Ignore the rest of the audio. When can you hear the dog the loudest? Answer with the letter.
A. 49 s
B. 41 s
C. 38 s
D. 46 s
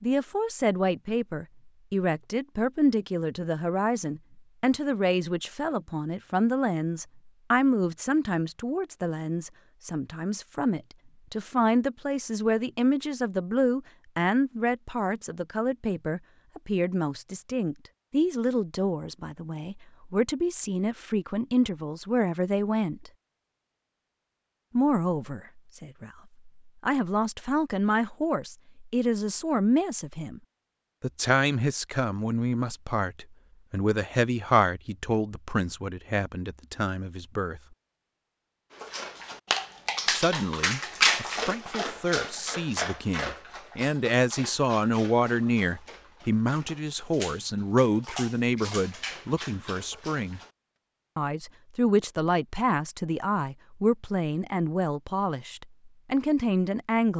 B.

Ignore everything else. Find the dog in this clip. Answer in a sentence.
The dog can be heard from 38.7 to 50.5 s.